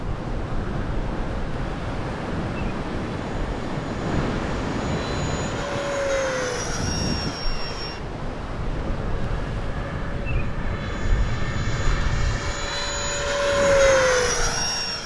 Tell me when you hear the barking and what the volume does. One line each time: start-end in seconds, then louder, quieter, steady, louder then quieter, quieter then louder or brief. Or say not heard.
not heard.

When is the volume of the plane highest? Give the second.
14 s.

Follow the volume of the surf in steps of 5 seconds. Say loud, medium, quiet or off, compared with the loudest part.
loud, loud, medium.